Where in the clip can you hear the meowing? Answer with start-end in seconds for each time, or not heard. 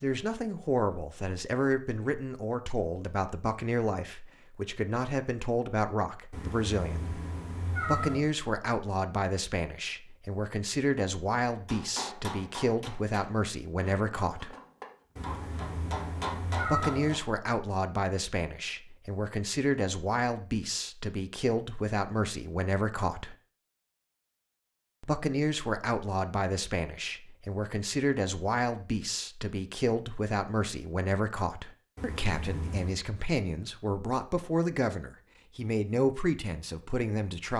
6.3-8.2, 15.2-17.1, 31.9-33.0.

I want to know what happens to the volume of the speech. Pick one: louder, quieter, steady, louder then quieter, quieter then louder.
steady.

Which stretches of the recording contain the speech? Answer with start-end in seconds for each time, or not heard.
0.0-7.2, 7.8-14.6, 16.6-23.4, 25.0-37.5.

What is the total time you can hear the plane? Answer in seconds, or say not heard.
not heard.